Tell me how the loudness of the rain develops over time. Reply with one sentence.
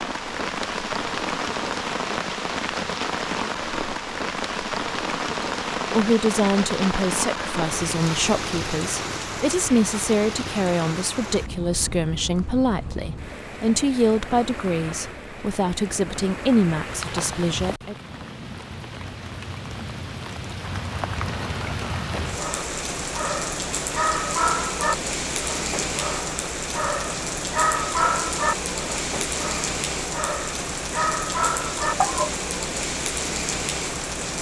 The loudness of the rain goes down, then up.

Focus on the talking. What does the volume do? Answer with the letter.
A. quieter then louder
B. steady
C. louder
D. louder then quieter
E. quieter
B.